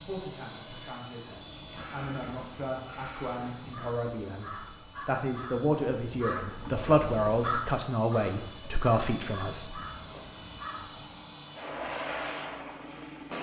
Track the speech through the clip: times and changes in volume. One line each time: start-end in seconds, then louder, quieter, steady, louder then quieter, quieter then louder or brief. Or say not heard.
0.0-9.8 louder.